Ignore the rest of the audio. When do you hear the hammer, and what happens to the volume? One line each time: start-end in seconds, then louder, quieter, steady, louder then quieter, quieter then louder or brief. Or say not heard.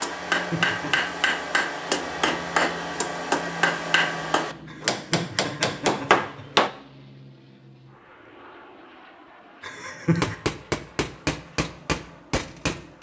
0.0-6.7 steady
10.1-12.9 brief.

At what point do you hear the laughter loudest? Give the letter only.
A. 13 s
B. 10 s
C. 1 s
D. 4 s
B.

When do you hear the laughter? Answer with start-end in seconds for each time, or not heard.
0.3-0.9, 4.7-6.5, 9.6-10.3.